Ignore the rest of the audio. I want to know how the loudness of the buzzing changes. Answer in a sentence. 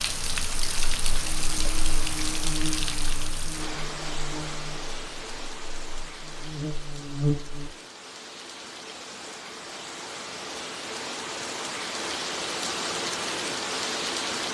The volume of the buzzing goes down, then up.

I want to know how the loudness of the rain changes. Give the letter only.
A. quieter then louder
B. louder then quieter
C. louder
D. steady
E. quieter
A.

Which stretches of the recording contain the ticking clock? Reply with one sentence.
You can't hear the ticking clock here.